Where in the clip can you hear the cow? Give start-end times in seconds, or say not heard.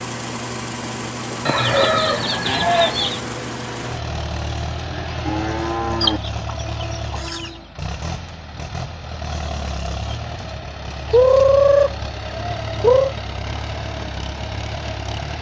4.8-6.2.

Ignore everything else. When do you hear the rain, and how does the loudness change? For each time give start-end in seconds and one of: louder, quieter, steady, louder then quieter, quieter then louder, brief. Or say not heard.
not heard.